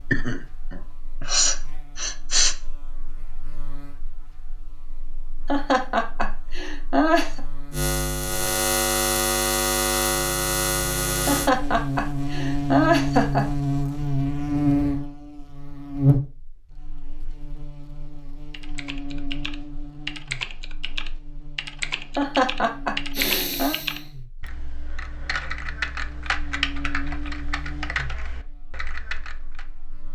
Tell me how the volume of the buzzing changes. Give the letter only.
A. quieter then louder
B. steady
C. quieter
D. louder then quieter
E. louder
D.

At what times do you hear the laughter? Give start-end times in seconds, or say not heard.
5.5-7.4, 11.2-13.4, 22.1-23.8.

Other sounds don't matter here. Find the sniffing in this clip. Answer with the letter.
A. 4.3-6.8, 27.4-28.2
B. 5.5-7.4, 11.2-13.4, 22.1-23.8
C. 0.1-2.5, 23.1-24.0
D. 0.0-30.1
C.